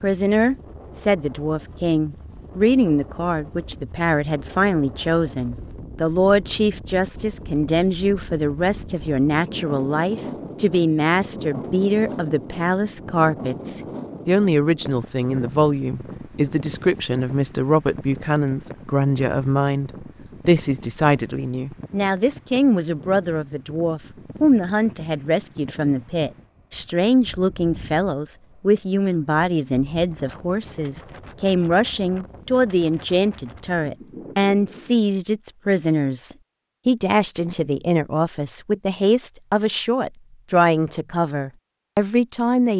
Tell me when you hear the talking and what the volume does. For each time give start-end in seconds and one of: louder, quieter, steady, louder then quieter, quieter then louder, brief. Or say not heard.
0.0-42.7 steady.